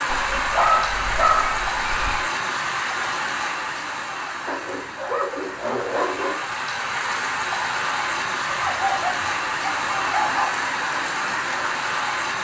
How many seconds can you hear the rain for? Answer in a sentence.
The rain can be heard for 12 seconds in total.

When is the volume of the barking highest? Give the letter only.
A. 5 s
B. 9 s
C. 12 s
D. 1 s
D.